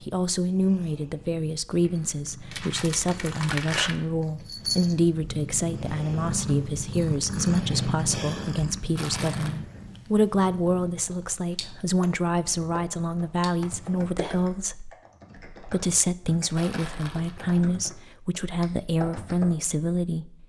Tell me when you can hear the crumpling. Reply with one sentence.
The crumpling can be heard from 2.5 to 4.0 s, from 8.9 to 9.6 s and from 16.6 to 17.7 s.